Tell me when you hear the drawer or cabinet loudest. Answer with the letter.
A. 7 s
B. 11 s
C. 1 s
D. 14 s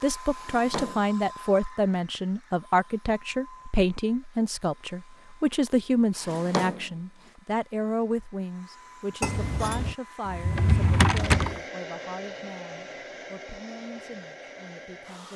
B.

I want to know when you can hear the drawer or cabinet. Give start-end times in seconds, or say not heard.
0.3-1.1, 6.2-7.0, 10.2-11.6.